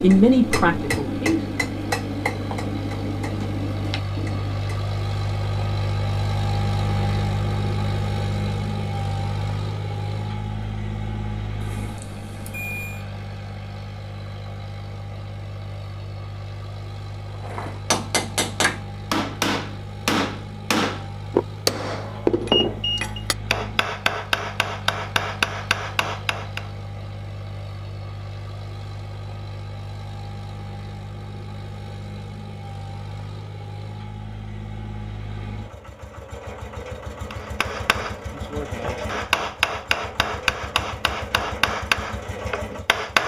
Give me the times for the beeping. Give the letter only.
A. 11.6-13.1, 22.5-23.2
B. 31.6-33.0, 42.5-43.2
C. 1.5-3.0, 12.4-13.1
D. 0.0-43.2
A.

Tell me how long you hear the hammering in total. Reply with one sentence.
You can hear the hammering for 20 seconds altogether.